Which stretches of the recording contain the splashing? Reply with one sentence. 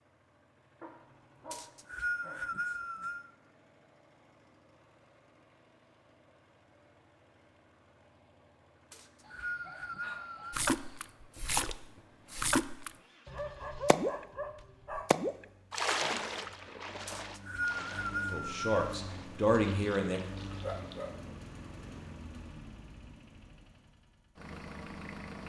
You can hear the splashing from 10.5 to 14.2 s and from 14.9 to 21.0 s.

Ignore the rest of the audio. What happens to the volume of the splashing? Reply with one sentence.
The volume of the splashing goes down.